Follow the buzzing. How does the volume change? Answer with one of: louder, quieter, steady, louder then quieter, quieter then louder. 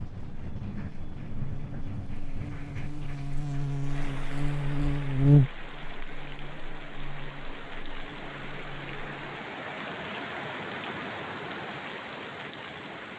louder then quieter.